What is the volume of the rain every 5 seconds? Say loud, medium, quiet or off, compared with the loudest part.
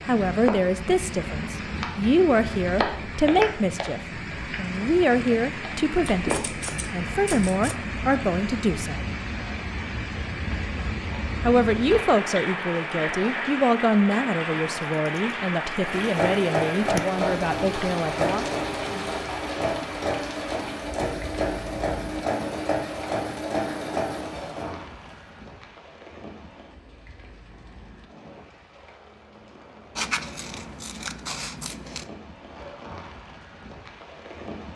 loud, loud, loud, loud, medium, quiet, quiet.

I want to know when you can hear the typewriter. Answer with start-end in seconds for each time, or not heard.
not heard.